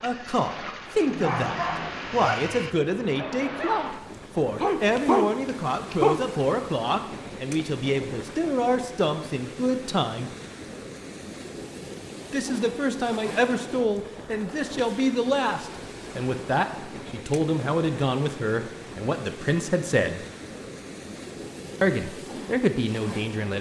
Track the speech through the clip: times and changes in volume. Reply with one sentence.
The speech can be heard from 0.0 to 10.3 s, at a steady volume; from 12.3 to 20.2 s, at a steady volume; and briefly from 21.8 to 23.5 s.